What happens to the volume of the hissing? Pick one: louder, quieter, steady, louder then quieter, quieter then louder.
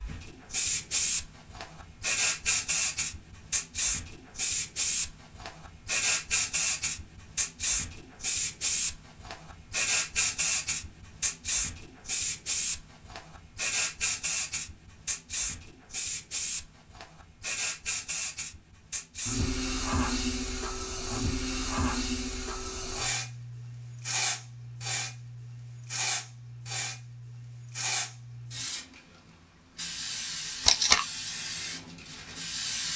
quieter.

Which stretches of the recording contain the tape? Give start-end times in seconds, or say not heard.
30.6-31.1.